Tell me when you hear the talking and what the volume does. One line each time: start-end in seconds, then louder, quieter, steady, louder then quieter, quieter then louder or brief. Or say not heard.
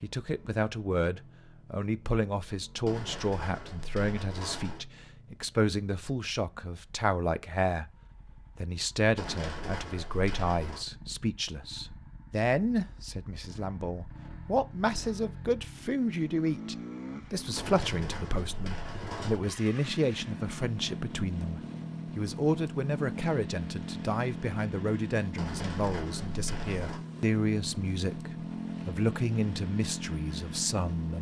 0.0-7.9 steady
8.6-31.1 steady.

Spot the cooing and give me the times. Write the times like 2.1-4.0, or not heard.
2.9-4.8, 9.2-10.8, 17.6-19.4, 25.4-27.0.